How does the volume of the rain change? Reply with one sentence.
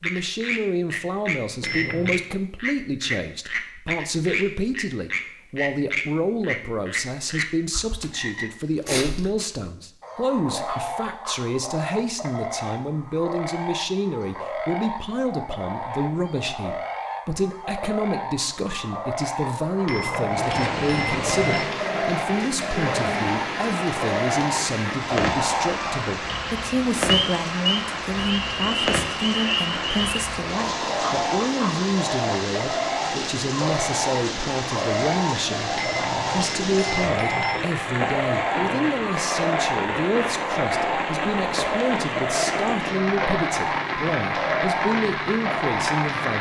The loudness of the rain stays about the same.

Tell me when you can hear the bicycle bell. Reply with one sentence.
You can hear the bicycle bell from 1.6 to 2.2 s, from 19.9 to 21.6 s and from 35.8 to 37.7 s.